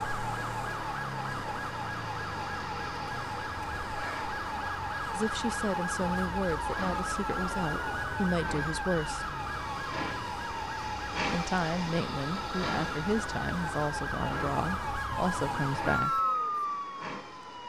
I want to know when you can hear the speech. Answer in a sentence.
You can hear the speech from 5.1 to 9.3 s and from 11.3 to 16.2 s.